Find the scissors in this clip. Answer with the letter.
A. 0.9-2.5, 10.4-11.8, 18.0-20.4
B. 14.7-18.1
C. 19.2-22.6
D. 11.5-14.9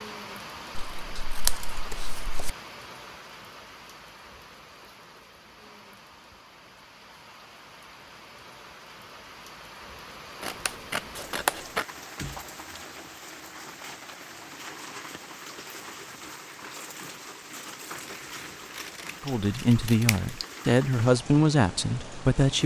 A.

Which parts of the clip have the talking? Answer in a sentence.
You can hear the talking from 19.2 to 22.6 s.